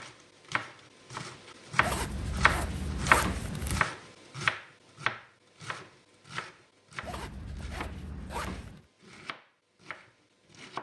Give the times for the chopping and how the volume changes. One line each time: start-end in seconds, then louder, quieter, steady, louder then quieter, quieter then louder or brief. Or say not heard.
0.0-10.7 louder then quieter.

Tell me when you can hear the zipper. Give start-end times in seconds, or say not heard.
1.8-3.8, 7.0-8.8.